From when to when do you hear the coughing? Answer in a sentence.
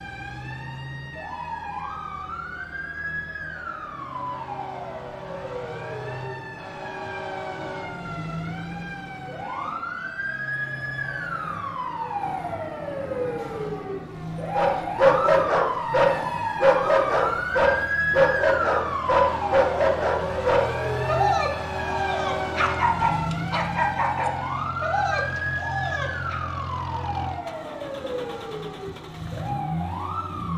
The coughing can't be heard in this clip.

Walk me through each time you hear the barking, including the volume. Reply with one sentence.
You can hear the barking from 14.6 to 26.4 s, getting quieter.